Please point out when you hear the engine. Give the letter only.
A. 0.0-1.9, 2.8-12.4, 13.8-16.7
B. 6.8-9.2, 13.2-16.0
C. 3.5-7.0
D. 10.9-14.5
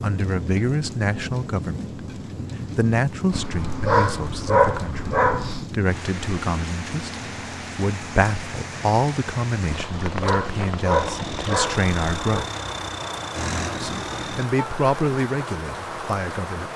D.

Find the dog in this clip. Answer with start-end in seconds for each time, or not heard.
3.3-5.6, 9.7-12.4.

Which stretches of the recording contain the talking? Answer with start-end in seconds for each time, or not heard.
0.0-1.9, 2.8-12.4, 13.8-16.7.